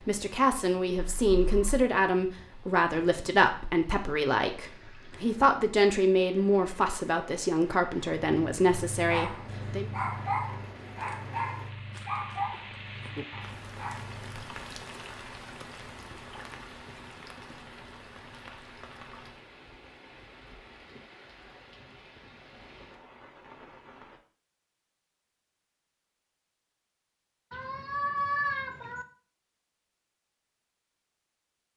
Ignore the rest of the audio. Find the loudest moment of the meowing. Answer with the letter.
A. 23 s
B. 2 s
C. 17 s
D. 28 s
D.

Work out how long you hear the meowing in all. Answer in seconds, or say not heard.
2 s.